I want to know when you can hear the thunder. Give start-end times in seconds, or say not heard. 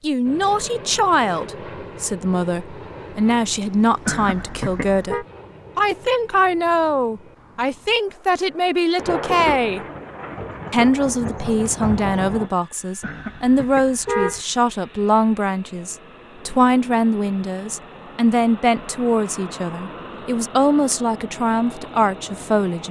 8.9-12.5.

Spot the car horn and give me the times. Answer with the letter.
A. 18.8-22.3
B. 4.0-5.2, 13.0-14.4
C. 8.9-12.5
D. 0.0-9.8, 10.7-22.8
B.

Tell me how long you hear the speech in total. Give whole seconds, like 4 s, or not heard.
22 s.